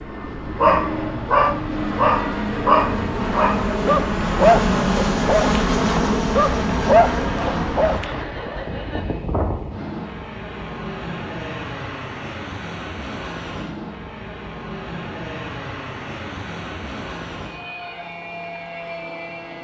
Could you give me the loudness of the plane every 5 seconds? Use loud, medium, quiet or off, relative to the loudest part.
loud, loud, medium, medium.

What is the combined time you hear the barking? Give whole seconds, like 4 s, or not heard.
8 s.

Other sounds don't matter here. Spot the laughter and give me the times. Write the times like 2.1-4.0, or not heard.
8.0-9.2.